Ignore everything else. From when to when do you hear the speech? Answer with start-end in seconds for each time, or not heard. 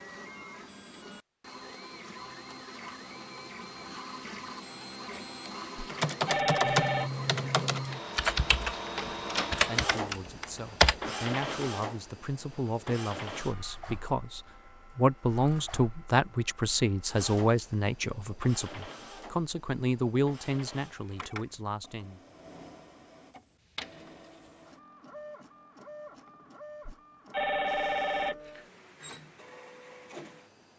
9.6-22.2.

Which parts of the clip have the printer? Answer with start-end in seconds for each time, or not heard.
0.0-30.7.